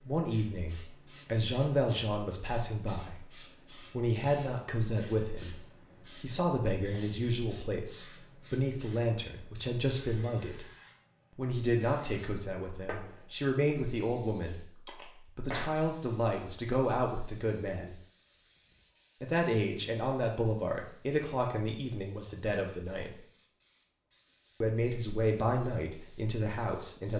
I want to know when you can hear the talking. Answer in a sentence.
You can hear the talking from 0.0 to 10.7 s, from 11.3 to 18.0 s, from 19.2 to 23.2 s and from 24.6 to 27.1 s.